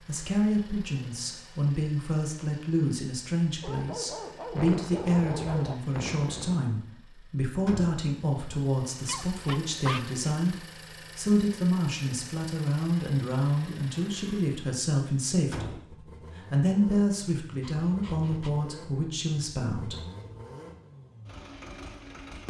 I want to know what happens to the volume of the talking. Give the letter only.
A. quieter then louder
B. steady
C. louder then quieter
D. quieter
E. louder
B.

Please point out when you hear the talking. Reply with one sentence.
You can hear the talking from 0.1 to 20.0 s.